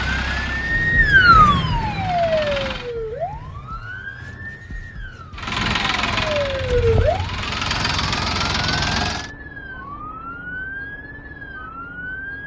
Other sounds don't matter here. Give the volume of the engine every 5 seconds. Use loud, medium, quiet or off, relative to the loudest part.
medium, loud, off.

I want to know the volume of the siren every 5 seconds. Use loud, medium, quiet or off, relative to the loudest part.
loud, medium, quiet.